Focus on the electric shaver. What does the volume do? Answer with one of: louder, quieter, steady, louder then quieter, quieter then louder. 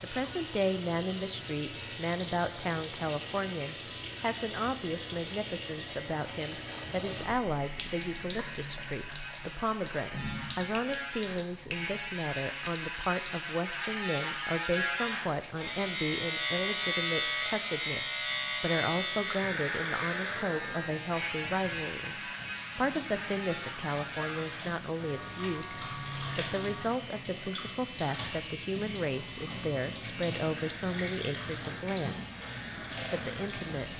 louder then quieter.